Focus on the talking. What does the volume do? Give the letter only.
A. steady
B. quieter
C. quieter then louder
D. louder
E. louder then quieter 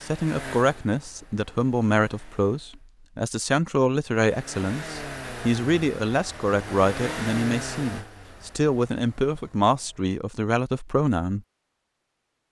A.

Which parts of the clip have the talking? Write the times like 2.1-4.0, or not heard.
0.0-11.4.